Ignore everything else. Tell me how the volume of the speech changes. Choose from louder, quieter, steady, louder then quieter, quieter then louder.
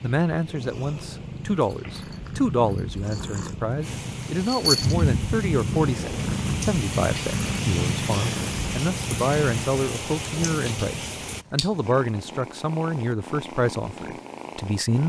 steady.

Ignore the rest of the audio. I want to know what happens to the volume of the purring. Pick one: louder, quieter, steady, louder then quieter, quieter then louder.
louder then quieter.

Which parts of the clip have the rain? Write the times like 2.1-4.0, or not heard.
0.0-11.4.